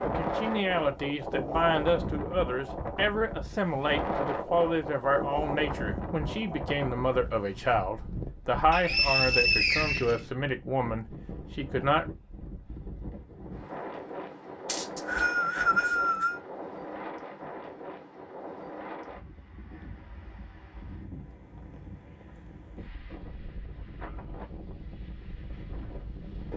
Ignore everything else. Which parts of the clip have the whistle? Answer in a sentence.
You can hear the whistle from 8.7 to 10.2 s and from 14.7 to 16.4 s.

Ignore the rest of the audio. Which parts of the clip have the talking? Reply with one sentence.
You can hear the talking from 0.0 to 12.2 s.